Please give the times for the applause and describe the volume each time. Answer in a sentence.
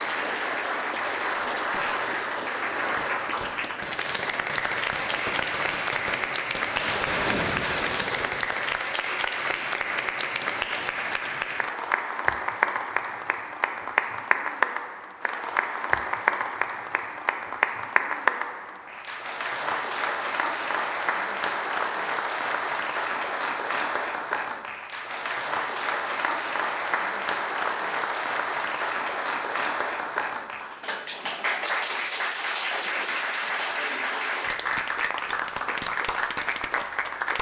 The applause can be heard from 0.0 to 37.3 s, at a steady volume.